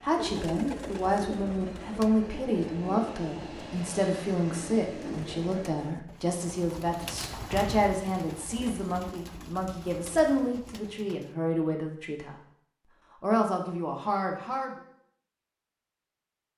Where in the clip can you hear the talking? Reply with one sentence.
You can hear the talking from 0.0 to 12.3 s and from 13.2 to 14.8 s.